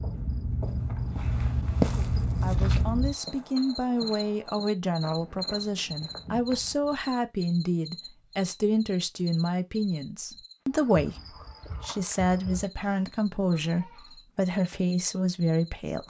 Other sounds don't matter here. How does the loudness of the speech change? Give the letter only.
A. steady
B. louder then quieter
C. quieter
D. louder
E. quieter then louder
A.